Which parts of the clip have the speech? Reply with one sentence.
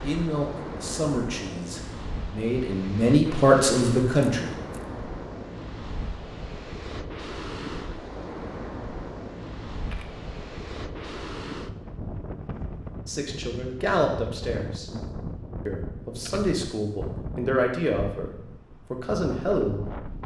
The speech can be heard from 0.0 to 4.5 s, from 13.1 to 14.8 s and from 15.7 to 20.0 s.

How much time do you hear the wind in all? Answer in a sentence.
The wind can be heard for 20 seconds in total.